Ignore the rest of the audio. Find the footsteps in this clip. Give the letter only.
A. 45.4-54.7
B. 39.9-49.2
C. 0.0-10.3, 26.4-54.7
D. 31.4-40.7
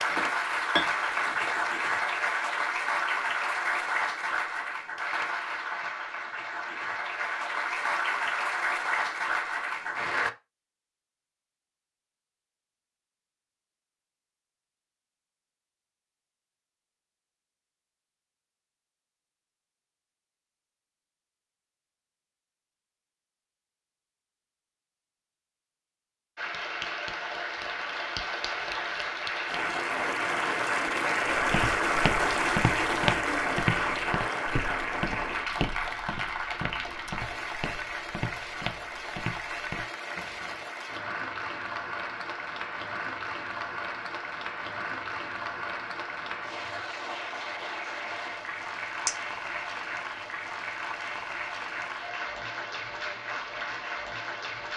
D.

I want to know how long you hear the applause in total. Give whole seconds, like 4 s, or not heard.
39 s.